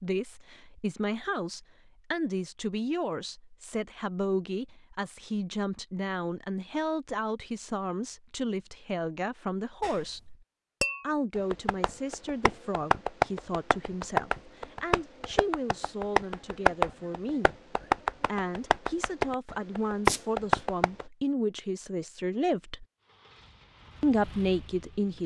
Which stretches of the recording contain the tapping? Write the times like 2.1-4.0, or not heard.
9.8-21.1.